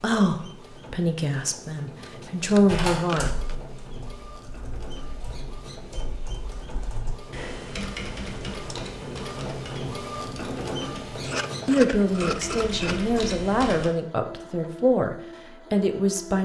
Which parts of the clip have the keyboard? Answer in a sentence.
You can hear the keyboard from 2.6 to 13.9 s.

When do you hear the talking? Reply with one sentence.
The talking can be heard from 0.0 to 3.3 s and from 11.7 to 16.4 s.